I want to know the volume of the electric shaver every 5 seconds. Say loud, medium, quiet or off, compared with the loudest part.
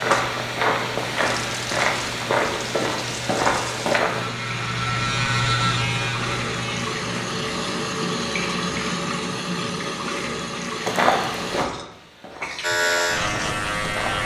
medium, loud, loud.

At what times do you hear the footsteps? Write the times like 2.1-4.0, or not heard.
0.0-4.3, 10.8-14.2.